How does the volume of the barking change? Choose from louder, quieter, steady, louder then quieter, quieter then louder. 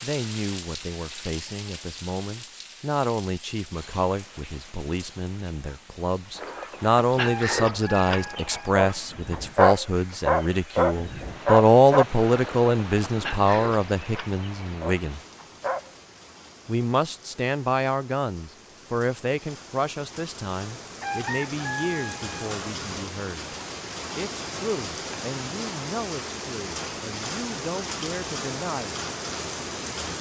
louder then quieter.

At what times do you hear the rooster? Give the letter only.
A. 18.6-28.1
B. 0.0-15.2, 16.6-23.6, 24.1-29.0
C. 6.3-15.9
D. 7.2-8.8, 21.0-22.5
D.